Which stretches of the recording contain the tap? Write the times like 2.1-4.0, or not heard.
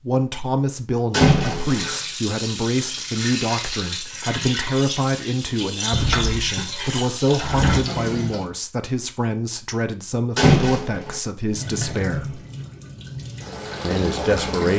1.6-8.5, 11.4-14.7.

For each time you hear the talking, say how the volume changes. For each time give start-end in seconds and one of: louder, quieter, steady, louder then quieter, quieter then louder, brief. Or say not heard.
0.0-12.4 steady
13.8-14.7 brief.